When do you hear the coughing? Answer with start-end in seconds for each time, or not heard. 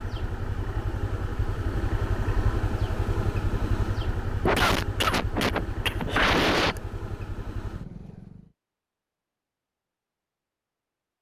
4.5-6.8.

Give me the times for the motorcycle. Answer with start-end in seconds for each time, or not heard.
0.0-8.5.